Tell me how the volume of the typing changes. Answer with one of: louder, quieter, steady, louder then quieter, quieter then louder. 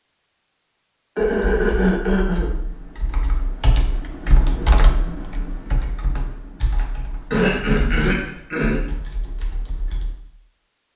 louder then quieter.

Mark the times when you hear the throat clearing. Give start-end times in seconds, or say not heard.
1.1-2.5, 7.3-8.8.